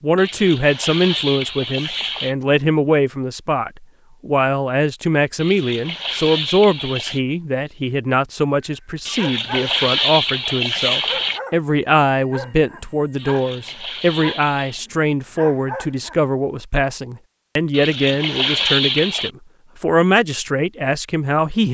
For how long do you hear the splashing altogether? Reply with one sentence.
The splashing can be heard for 10 seconds in total.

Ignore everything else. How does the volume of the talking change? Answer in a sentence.
The volume of the talking stays about the same.